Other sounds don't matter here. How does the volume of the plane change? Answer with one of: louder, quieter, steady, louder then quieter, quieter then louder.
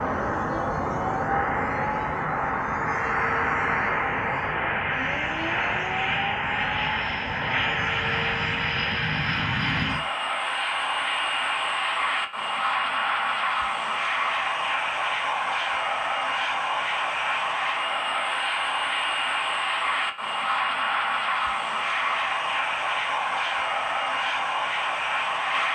steady.